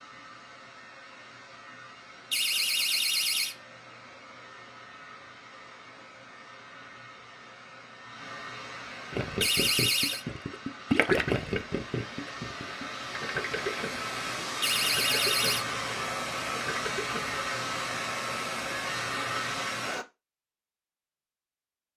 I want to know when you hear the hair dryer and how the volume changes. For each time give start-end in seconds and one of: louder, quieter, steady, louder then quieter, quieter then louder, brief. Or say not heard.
0.0-20.1 louder.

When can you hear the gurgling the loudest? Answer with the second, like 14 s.
11 s.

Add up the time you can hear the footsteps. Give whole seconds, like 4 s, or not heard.
not heard.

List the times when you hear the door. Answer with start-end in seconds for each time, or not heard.
2.3-3.5, 9.4-10.2, 14.6-15.7.